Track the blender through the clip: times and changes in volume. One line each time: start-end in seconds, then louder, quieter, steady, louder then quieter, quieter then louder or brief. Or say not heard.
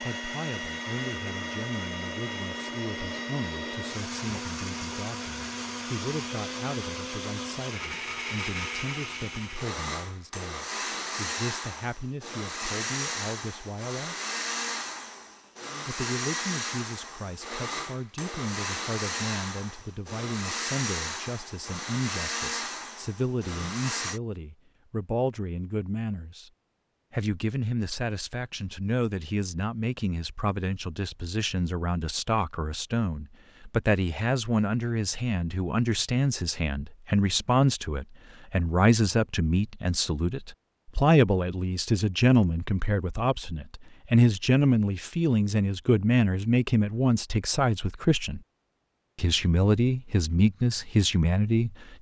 0.0-24.2 steady.